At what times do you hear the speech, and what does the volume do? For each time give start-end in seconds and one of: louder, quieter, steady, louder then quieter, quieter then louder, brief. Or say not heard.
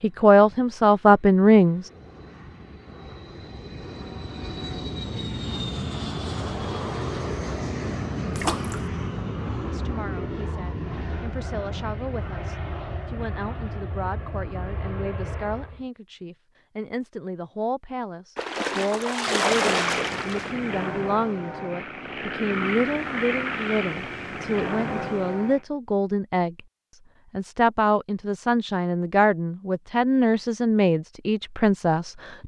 0.0-1.9 brief
9.7-26.6 louder
27.3-32.4 steady.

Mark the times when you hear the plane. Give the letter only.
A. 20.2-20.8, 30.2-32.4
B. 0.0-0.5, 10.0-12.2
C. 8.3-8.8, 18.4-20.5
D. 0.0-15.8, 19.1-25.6
D.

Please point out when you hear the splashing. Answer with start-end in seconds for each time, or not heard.
8.3-8.8, 18.4-20.5.